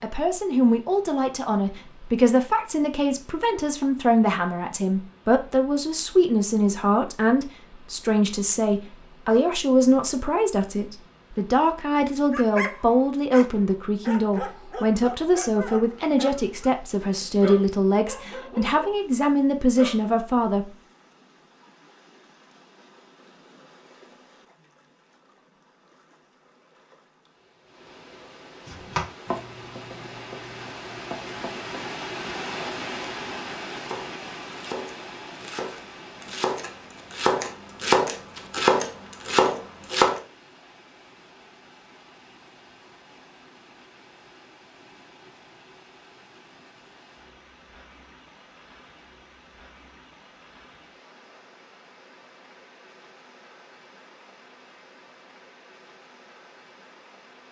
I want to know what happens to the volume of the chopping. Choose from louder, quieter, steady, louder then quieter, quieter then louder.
quieter then louder.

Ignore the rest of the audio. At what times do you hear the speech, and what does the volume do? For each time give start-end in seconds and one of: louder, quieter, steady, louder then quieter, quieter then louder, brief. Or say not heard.
0.0-20.6 steady.